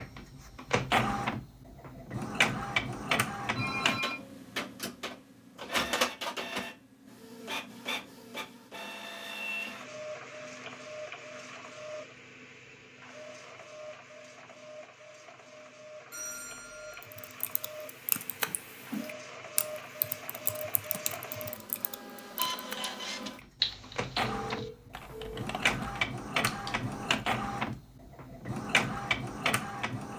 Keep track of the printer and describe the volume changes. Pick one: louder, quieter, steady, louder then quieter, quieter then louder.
quieter then louder.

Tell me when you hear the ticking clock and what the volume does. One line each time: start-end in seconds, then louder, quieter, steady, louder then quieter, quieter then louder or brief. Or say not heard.
not heard.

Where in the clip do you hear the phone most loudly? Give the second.
4 s.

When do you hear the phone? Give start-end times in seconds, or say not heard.
3.5-4.2, 16.1-17.1, 24.3-25.4.